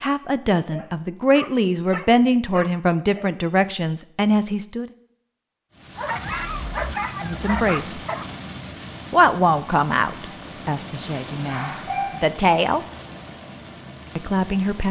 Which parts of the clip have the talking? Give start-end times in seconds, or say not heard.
0.0-4.8, 7.2-8.0, 9.1-12.8, 14.2-14.8.